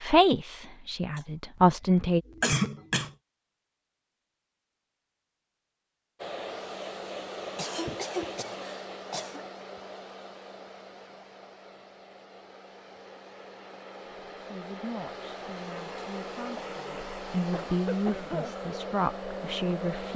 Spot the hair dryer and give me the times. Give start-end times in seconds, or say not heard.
6.2-20.1.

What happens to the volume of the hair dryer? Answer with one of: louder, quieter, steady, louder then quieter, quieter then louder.
quieter then louder.